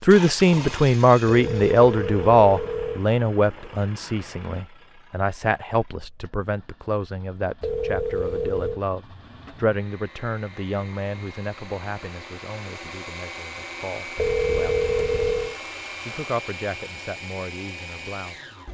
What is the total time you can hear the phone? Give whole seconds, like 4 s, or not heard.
4 s.